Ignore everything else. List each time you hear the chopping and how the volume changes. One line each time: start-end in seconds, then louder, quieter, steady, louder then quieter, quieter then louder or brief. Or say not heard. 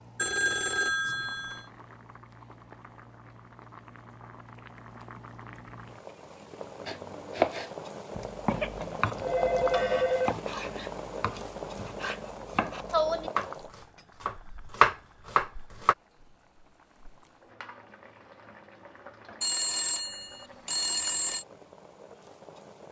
6.8-13.5 quieter then louder
14.2-15.9 brief.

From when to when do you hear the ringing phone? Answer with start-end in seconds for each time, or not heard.
0.1-1.6, 8.4-10.3, 19.4-21.4.